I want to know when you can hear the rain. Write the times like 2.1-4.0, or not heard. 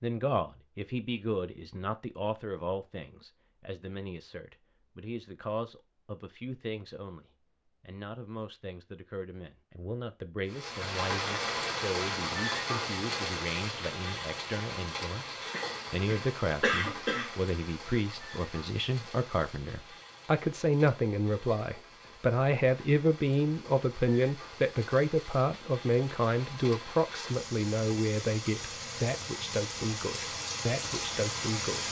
10.4-31.8.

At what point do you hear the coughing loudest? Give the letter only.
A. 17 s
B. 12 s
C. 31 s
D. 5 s
A.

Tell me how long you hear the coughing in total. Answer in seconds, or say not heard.
2 s.